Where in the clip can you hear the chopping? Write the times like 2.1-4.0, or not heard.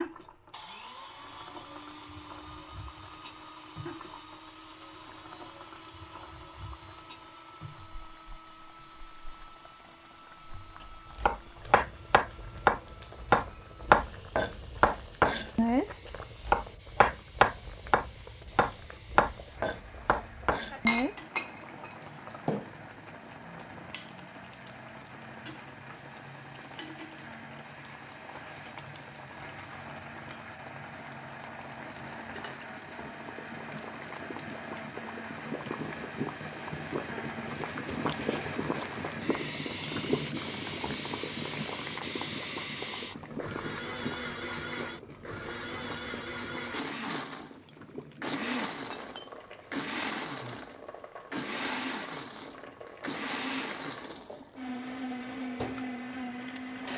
10.8-21.2.